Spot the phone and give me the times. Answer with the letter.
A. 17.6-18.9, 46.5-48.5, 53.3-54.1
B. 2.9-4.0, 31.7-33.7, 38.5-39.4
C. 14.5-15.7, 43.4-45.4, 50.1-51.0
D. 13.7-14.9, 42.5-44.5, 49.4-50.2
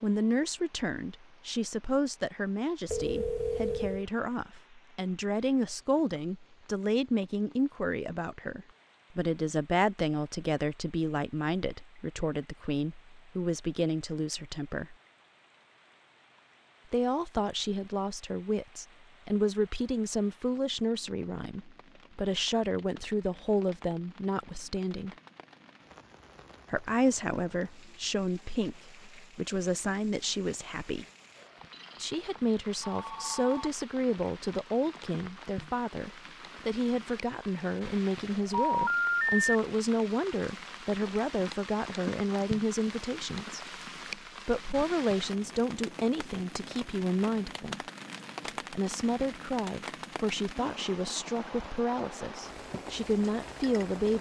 B.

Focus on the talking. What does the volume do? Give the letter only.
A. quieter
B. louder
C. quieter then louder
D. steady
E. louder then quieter
D.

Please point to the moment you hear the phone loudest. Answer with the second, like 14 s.
39 s.